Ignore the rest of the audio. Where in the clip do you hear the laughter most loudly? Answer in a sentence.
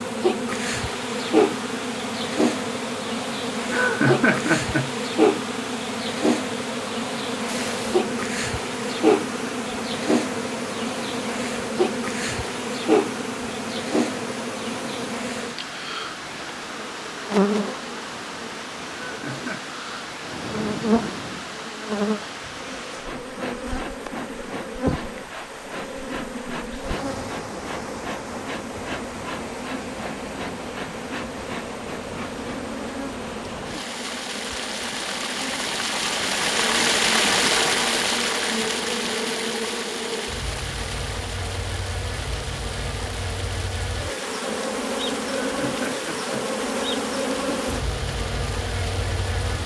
The volume of the laughter peaks at 4 seconds.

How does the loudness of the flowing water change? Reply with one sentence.
The volume of the flowing water goes up, then down.